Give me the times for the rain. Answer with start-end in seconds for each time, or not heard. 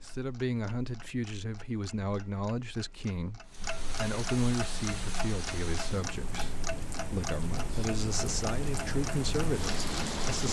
3.5-10.4.